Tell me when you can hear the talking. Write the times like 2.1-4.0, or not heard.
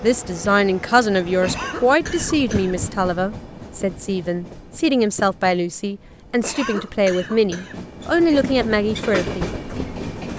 0.0-9.5.